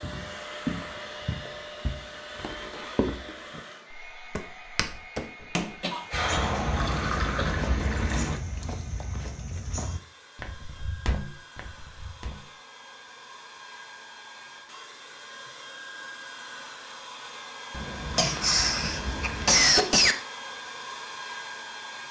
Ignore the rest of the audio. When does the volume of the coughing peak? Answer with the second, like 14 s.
20 s.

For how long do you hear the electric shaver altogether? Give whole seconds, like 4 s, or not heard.
not heard.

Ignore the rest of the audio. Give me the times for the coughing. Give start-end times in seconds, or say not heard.
5.8-7.5, 18.1-20.1.